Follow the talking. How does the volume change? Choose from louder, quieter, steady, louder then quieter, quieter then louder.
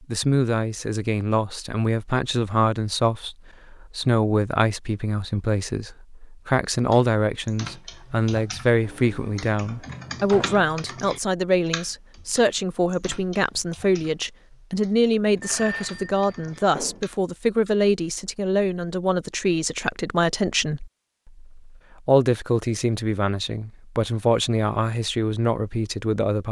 steady.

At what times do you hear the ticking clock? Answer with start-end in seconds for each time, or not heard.
not heard.